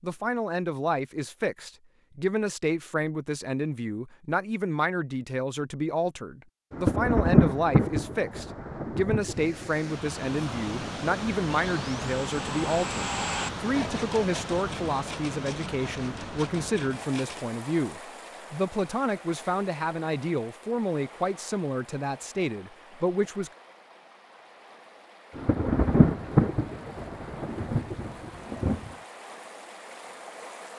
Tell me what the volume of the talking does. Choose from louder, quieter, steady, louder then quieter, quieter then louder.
steady.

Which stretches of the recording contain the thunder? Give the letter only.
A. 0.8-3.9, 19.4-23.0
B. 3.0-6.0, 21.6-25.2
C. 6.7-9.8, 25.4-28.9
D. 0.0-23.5
C.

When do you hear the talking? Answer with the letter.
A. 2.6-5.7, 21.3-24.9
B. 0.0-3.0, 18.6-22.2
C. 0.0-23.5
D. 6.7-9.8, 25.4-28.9
C.